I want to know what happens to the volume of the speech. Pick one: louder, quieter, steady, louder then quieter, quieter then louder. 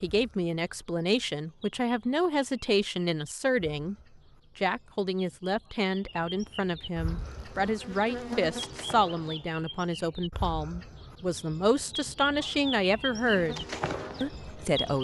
steady.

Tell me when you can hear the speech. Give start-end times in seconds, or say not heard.
0.0-4.0, 4.5-14.9.